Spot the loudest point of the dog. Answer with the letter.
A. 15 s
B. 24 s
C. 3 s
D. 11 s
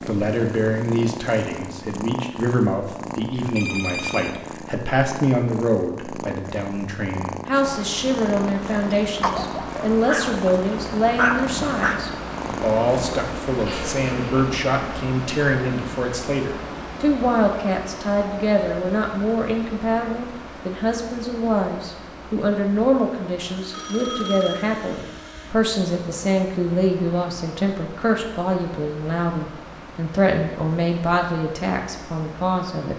D.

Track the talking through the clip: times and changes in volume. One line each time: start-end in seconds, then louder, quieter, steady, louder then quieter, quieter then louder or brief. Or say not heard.
0.1-32.9 steady.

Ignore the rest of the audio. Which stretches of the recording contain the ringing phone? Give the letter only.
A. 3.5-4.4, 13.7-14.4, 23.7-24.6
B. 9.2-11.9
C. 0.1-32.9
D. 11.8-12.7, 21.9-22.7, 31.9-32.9
A.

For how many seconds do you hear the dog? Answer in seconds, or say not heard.
3 s.